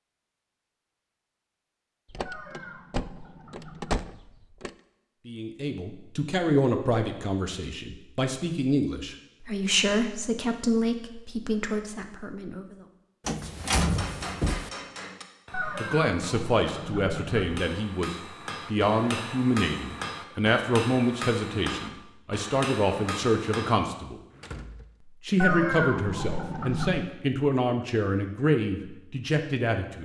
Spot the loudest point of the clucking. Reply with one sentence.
The volume of the clucking peaks at 26 seconds.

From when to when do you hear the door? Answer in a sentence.
You can hear the door from 2.1 to 4.7 s, from 13.2 to 14.7 s and from 24.4 to 24.9 s.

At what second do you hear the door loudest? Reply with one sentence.
The loudest moment of the door is at 14 seconds.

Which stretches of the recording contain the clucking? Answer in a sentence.
You can hear the clucking from 2.2 to 4.0 s, from 15.5 to 17.6 s and from 25.4 to 27.1 s.